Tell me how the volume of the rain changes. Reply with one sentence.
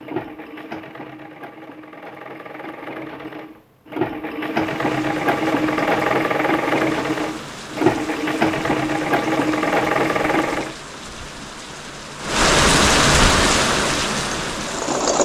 The loudness of the rain goes up.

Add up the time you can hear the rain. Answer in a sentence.
You can hear the rain for 11 seconds altogether.